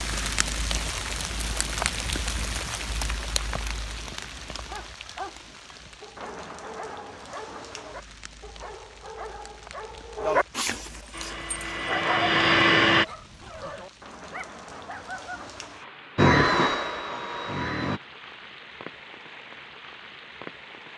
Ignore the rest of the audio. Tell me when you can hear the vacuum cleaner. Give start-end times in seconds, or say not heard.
11.1-13.1, 16.1-18.0.